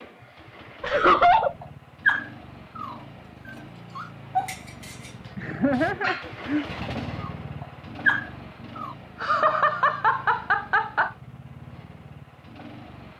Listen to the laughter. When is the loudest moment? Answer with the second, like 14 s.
1 s.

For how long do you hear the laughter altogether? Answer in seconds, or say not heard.
4 s.